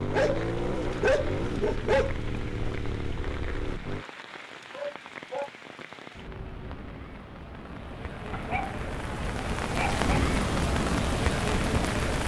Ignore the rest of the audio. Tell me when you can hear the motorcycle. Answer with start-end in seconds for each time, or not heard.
0.0-4.0.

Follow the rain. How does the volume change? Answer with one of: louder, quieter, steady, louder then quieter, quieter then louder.
louder.